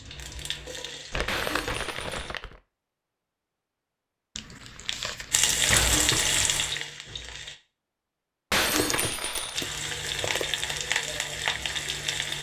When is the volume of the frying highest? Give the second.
6 s.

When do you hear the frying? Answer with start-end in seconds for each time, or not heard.
0.0-2.4, 5.3-7.5, 9.5-12.3.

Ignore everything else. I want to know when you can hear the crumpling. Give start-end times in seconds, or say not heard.
1.1-2.6, 4.3-6.5, 8.7-10.7.